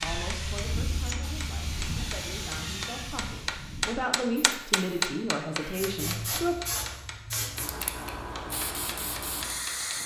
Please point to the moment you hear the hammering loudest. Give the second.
5 s.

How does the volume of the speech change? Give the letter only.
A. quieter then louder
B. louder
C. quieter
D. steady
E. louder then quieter
B.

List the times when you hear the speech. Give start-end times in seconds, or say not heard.
0.0-6.5.